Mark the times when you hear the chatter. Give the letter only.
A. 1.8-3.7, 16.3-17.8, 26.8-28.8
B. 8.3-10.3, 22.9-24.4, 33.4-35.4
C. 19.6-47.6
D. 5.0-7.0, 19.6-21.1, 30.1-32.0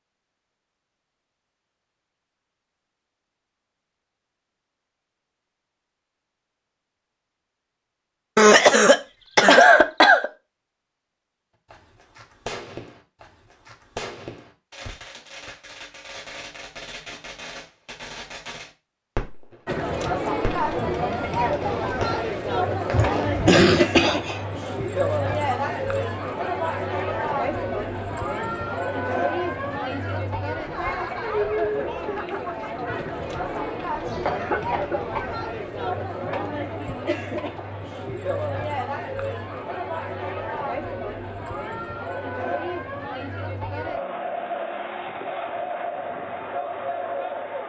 C.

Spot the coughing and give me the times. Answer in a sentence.
You can hear the coughing from 8.3 to 10.3 s, from 22.9 to 24.4 s and from 33.4 to 35.4 s.